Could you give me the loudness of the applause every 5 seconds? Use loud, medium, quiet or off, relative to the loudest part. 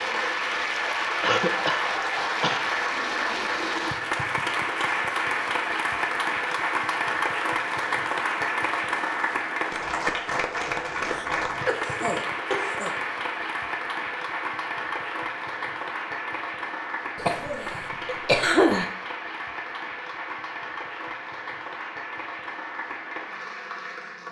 loud, loud, loud, medium, medium.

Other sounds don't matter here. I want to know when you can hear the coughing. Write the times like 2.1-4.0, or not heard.
1.2-2.6, 11.1-12.9, 17.1-18.9.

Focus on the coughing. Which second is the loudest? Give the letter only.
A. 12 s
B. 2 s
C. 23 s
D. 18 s
D.